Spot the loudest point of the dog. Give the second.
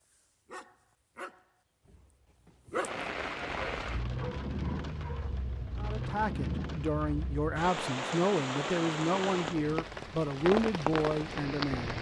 3 s.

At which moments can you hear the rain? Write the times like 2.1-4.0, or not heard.
2.8-11.9.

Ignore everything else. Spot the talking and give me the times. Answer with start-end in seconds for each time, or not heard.
5.8-11.9.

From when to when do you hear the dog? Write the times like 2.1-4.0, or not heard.
0.0-5.4.